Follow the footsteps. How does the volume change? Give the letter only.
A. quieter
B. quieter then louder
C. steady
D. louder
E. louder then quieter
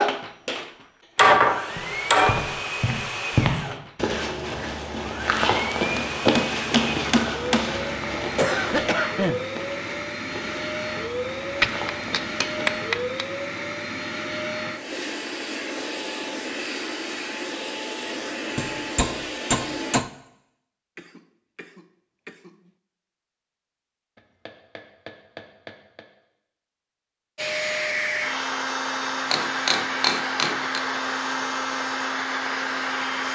A.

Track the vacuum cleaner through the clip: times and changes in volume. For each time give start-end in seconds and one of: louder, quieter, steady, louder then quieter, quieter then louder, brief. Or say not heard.
0.0-20.0 steady
27.4-33.3 steady.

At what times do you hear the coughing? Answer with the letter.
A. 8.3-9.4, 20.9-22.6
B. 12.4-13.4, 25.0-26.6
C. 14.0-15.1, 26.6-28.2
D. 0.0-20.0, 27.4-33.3
A.